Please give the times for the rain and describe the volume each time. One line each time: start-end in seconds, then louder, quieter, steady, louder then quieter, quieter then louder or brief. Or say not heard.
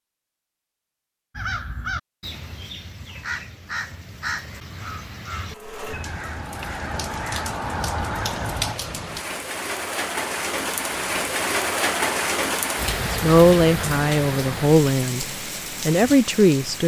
5.5-16.8 louder then quieter.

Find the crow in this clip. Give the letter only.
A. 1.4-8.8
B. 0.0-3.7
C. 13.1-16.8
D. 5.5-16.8
A.